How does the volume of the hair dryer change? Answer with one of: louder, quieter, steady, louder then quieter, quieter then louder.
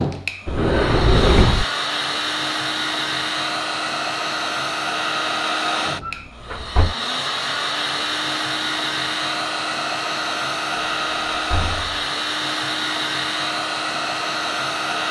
steady.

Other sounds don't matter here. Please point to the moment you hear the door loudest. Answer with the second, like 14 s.
1 s.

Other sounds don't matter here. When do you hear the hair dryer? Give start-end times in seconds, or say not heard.
0.0-15.0.